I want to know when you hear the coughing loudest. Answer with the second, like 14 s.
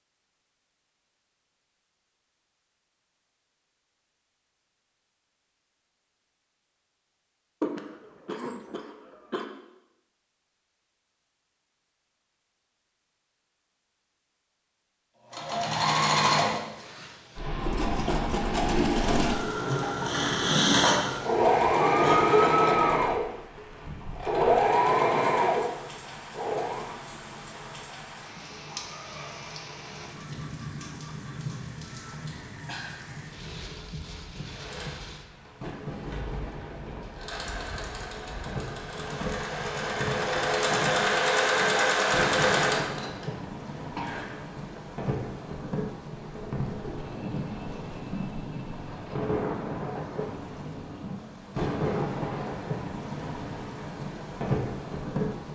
22 s.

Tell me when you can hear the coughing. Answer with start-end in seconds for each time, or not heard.
7.6-9.4, 22.0-22.7, 43.9-44.6.